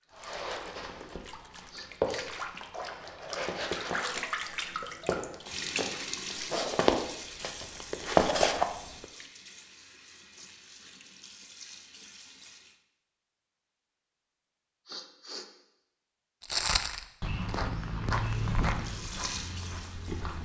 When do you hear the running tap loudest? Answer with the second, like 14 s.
4 s.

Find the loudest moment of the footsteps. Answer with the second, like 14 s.
8 s.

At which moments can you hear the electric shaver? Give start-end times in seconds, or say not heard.
not heard.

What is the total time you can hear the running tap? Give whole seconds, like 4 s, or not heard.
15 s.